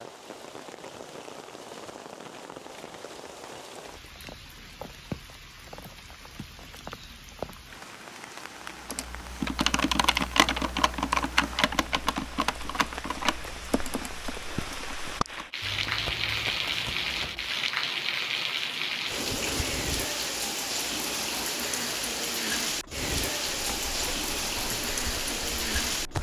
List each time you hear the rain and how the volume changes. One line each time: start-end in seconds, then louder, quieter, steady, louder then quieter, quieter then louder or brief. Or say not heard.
0.0-26.1 louder.